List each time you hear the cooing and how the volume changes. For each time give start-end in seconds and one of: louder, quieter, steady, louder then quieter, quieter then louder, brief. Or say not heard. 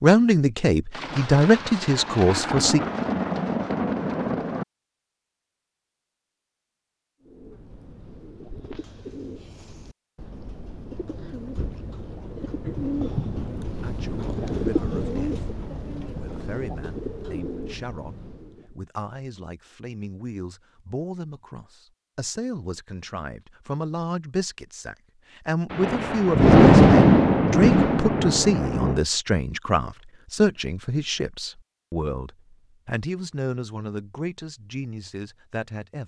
7.2-18.8 louder then quieter.